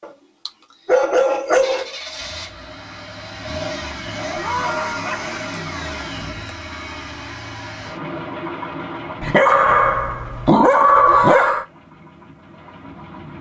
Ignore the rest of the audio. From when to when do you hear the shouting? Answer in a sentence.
The shouting can be heard from 4.3 to 5.1 s and from 11.1 to 11.7 s.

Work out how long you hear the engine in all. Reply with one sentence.
The engine can be heard for 12 seconds in total.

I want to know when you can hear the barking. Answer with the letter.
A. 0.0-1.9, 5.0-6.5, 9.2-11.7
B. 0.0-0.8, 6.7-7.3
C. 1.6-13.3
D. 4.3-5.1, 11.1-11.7
A.